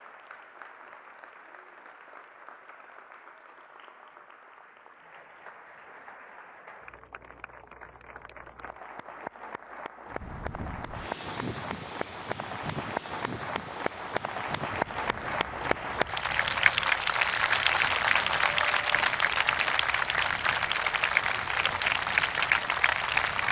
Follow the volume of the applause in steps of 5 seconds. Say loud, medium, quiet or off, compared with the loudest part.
quiet, quiet, medium, loud, loud.